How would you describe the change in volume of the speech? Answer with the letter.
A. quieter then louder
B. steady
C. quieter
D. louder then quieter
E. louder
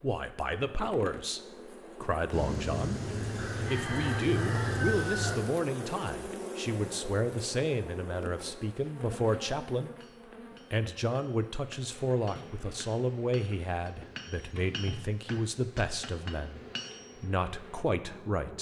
B.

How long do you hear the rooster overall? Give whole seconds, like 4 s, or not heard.
3 s.